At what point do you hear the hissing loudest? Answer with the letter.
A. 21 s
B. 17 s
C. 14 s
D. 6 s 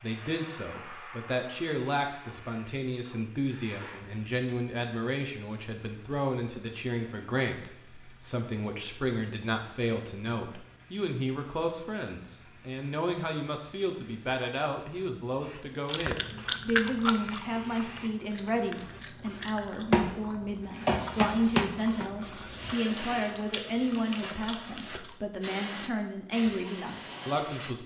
A.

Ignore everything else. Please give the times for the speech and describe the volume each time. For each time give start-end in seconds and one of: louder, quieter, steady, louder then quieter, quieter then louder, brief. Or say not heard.
0.0-27.8 steady.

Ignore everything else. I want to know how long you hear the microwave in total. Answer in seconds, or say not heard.
not heard.